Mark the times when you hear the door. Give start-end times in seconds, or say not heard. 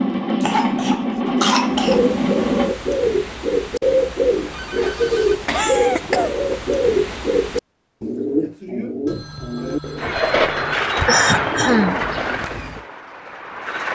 not heard.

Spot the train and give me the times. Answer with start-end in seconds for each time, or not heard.
0.0-2.8, 9.9-13.9.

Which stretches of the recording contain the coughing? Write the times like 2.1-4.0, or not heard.
0.4-2.0, 4.8-6.5, 11.1-11.9.